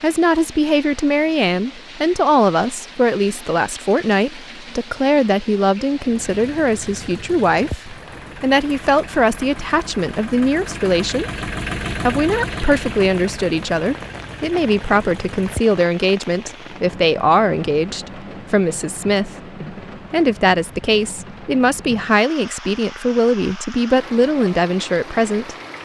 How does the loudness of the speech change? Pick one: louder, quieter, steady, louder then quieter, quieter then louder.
steady.